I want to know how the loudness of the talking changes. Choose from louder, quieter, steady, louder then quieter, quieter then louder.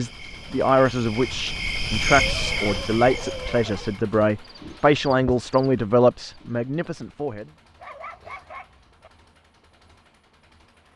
steady.